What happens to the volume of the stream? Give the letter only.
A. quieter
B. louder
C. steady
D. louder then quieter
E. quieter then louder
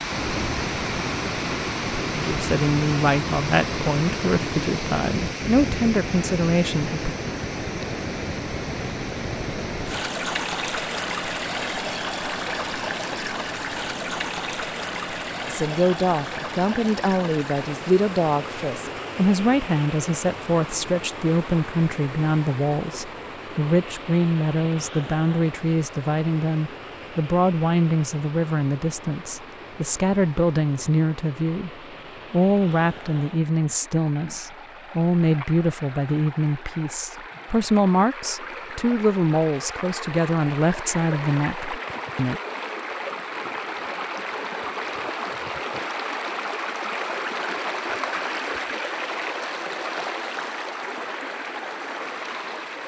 E.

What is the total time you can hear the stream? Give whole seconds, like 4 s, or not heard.
53 s.